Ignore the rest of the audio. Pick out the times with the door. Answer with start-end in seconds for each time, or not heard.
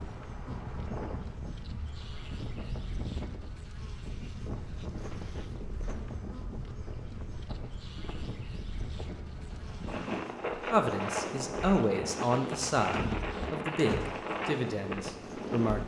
12.9-14.2.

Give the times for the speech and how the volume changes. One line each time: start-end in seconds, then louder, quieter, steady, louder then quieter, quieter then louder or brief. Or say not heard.
10.7-15.8 quieter.